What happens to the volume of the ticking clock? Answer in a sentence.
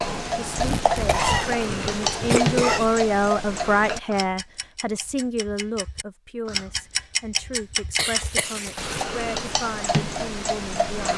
The volume of the ticking clock goes down, then up.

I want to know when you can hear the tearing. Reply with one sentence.
The tearing can be heard from 0.5 to 1.6 s and from 8.0 to 9.2 s.